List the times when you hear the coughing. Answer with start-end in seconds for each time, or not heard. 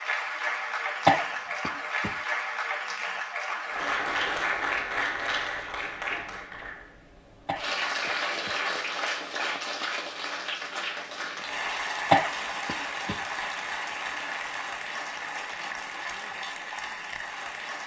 1.1-2.1, 7.5-8.6, 12.1-13.2.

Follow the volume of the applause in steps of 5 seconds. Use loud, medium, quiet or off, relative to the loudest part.
loud, loud, loud, medium.